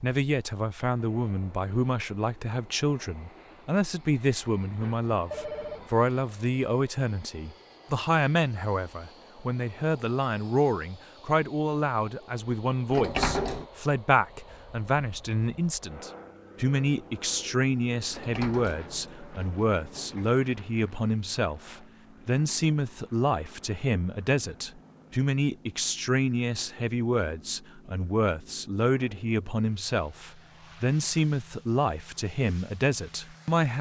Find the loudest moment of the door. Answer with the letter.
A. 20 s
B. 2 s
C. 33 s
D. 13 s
D.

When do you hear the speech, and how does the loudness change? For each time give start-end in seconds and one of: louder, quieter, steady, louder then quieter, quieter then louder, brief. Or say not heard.
0.0-33.7 steady.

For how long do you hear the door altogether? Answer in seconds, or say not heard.
3 s.